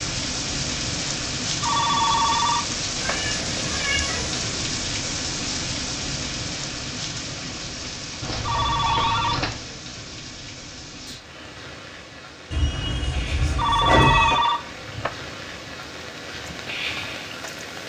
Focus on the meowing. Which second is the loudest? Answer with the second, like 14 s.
14 s.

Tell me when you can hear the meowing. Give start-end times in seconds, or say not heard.
3.0-4.5, 8.2-9.7, 12.5-14.4.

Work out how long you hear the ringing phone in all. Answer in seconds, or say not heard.
4 s.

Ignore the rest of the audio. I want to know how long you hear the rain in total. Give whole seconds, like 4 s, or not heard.
18 s.